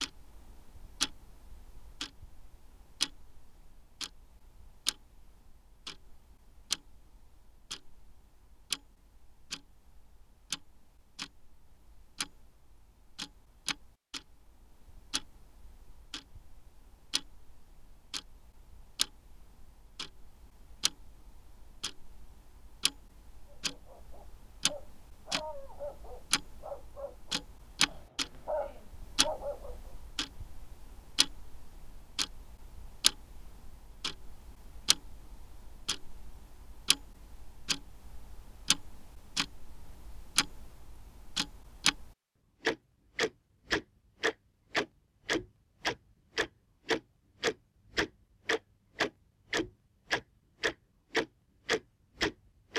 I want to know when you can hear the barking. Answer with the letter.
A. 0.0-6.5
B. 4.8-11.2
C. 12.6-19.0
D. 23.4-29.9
D.